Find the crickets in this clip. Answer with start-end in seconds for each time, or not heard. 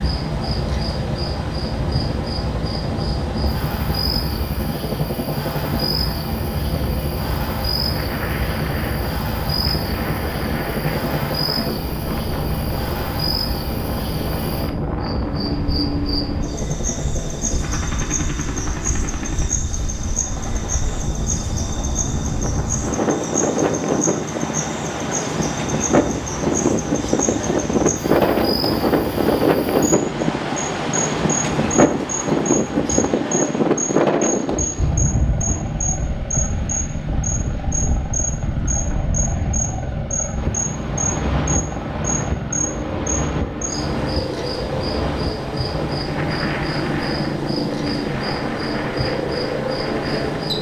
0.0-50.5.